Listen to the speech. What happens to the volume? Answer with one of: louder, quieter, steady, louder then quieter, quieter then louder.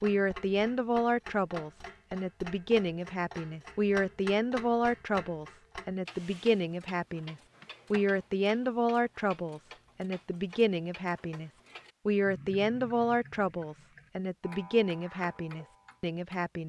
steady.